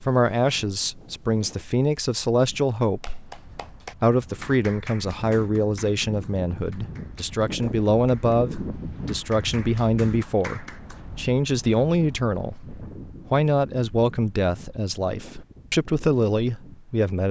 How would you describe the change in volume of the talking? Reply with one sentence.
The loudness of the talking stays about the same.